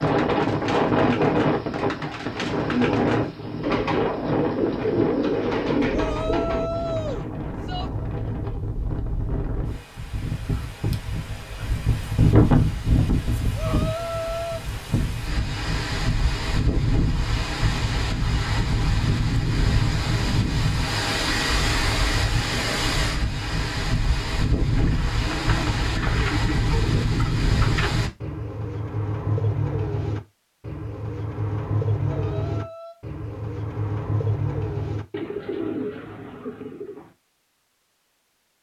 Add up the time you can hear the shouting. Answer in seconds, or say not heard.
4 s.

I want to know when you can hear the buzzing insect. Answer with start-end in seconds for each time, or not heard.
not heard.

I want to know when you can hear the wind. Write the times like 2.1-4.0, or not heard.
0.0-28.1.